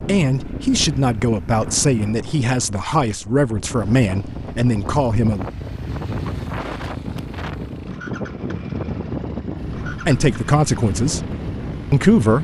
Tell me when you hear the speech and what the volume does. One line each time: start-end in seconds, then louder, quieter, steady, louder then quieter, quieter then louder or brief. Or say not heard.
0.1-5.5 steady
9.8-11.3 brief
11.9-12.3 brief.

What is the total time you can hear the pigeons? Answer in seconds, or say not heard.
not heard.